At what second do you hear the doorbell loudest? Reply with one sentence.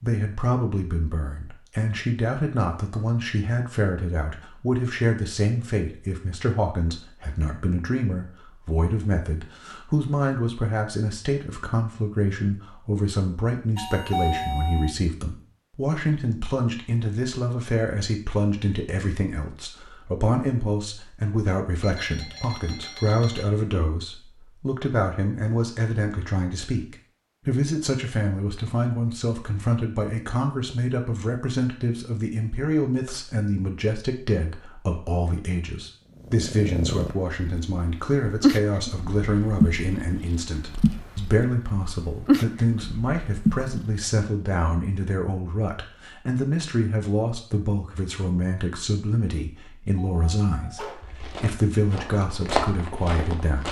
The volume of the doorbell peaks at 14 seconds.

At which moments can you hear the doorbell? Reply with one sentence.
You can hear the doorbell from 13.8 to 14.9 s, from 21.8 to 23.4 s and from 50.0 to 51.0 s.